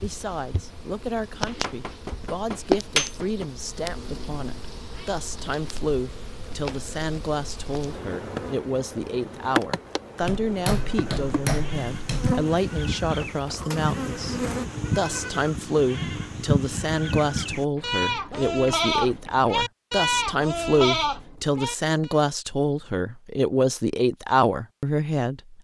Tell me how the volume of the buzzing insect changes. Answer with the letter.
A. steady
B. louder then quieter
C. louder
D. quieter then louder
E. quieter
D.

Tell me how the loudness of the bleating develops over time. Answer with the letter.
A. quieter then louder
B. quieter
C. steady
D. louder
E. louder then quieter
D.